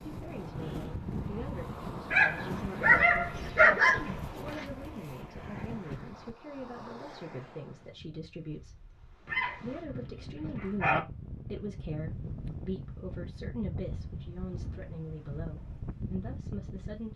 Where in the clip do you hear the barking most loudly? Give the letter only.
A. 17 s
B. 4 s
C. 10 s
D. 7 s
B.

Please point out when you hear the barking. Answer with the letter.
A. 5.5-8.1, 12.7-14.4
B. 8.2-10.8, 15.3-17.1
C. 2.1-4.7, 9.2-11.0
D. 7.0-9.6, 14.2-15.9
C.